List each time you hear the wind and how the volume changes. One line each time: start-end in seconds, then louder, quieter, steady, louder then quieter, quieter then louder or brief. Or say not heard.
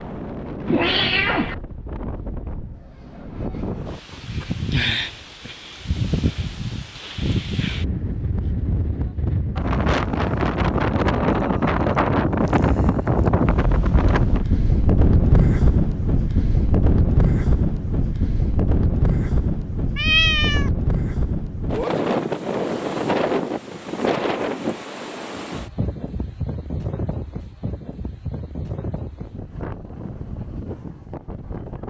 0.0-31.8 louder then quieter.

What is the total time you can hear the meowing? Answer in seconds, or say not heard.
2 s.